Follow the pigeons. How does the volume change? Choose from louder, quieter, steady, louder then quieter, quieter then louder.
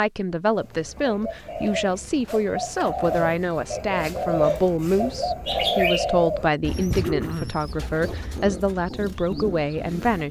louder then quieter.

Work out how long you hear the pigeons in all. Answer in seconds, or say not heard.
10 s.